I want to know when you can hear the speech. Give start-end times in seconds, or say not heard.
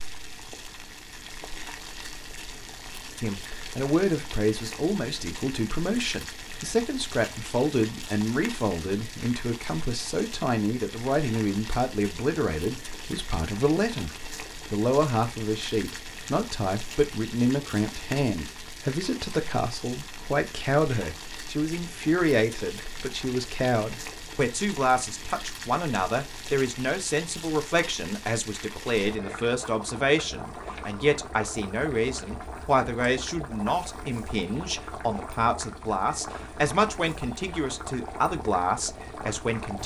3.2-39.8.